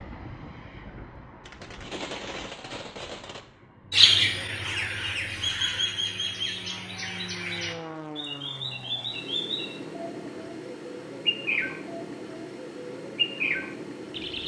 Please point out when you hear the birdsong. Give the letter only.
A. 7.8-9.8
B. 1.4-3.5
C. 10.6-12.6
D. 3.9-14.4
D.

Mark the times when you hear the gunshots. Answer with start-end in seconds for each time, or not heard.
1.4-3.5.